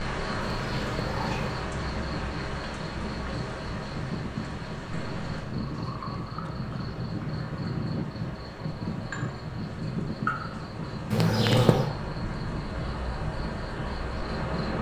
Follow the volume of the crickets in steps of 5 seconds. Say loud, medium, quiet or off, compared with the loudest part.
loud, medium, loud.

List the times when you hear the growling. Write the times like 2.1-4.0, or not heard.
0.6-1.6, 11.1-11.9.